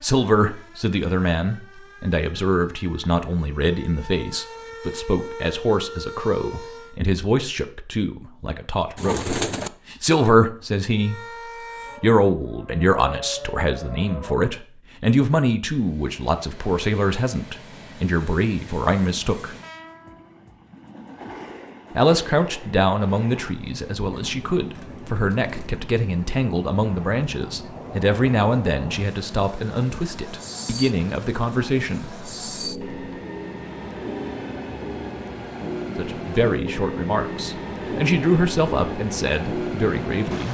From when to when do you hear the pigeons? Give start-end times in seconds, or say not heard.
8.9-9.7.